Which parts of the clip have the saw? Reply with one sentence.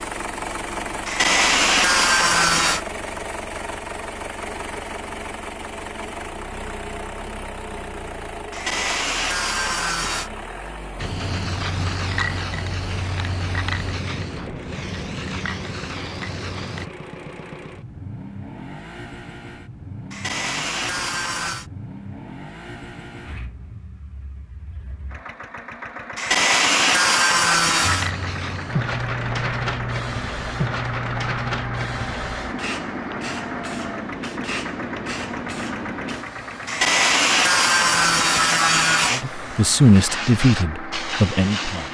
The saw can be heard from 1.1 to 2.8 s, from 8.5 to 10.3 s, from 20.1 to 21.7 s, from 26.1 to 28.1 s and from 36.6 to 39.2 s.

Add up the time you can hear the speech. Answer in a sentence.
The speech can be heard for 3 seconds in total.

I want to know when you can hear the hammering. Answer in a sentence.
The hammering can't be heard in this clip.